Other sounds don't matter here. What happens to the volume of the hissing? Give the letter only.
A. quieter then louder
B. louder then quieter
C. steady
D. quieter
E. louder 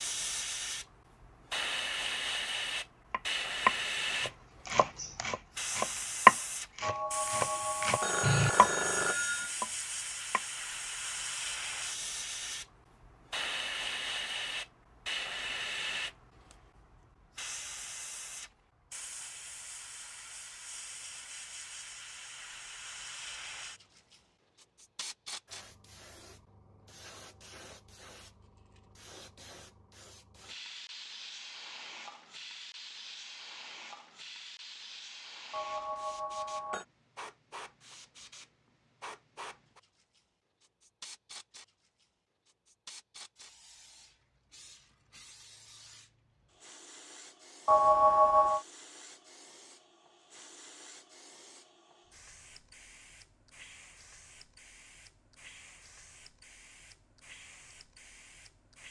D.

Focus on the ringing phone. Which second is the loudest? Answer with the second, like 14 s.
48 s.